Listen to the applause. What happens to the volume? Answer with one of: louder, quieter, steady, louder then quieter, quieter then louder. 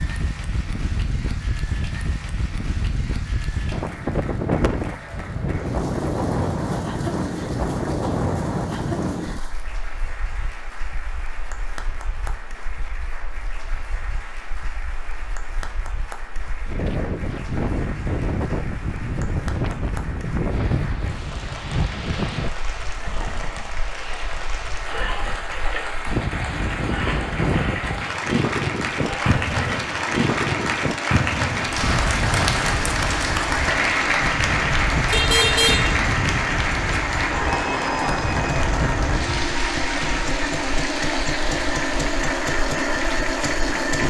louder.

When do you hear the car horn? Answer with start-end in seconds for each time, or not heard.
35.1-36.0.